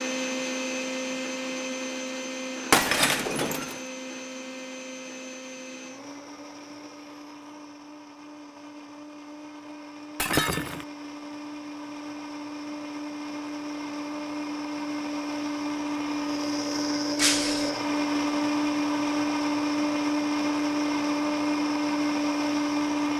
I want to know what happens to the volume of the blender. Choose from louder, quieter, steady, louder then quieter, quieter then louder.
quieter then louder.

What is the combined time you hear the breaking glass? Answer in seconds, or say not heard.
2 s.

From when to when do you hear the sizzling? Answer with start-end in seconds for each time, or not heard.
not heard.